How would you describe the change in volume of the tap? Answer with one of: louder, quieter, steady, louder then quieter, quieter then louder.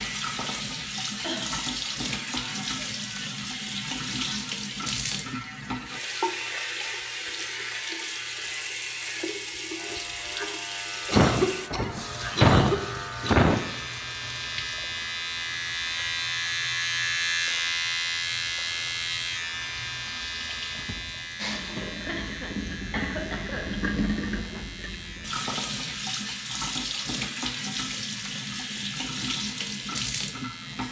quieter then louder.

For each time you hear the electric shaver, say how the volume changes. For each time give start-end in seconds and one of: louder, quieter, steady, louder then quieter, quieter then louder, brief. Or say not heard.
0.0-30.8 louder then quieter.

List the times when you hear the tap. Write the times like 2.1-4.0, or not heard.
0.0-30.8.